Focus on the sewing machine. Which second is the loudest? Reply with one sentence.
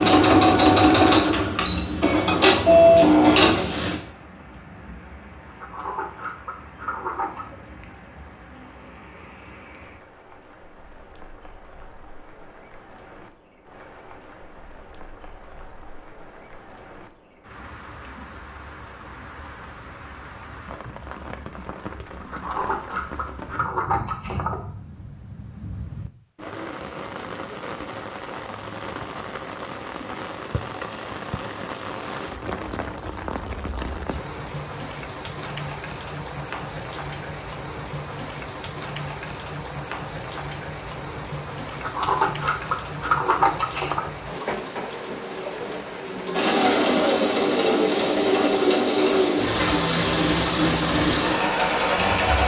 The volume of the sewing machine peaks at 3 seconds.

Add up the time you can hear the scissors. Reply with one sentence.
You can hear the scissors for 7 seconds altogether.